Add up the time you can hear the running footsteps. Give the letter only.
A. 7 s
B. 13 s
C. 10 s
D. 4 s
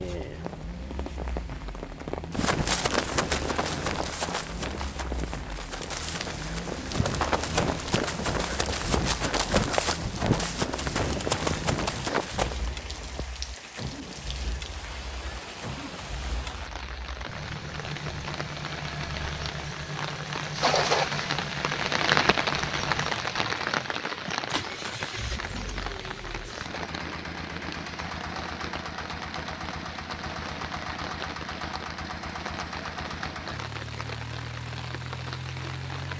C.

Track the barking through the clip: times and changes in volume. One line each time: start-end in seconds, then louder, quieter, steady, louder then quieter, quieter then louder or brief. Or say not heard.
not heard.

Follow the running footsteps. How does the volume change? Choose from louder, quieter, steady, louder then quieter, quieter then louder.
quieter then louder.